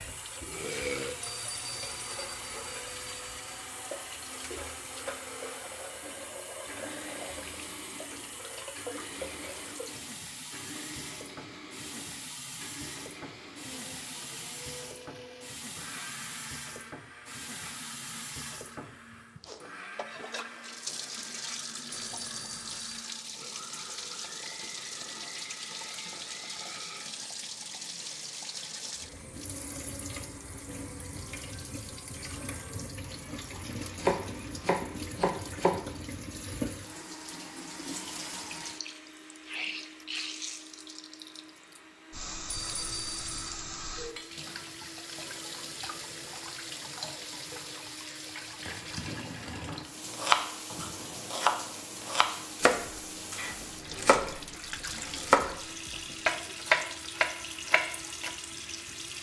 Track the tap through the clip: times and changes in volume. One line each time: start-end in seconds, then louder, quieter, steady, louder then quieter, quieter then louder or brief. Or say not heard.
0.0-59.1 steady.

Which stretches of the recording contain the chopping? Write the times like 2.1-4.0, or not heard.
34.0-35.8, 50.1-58.3.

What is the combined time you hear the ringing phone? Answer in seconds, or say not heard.
5 s.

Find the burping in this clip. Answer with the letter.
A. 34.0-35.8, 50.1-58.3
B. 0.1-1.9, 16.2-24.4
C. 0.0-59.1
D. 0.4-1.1
D.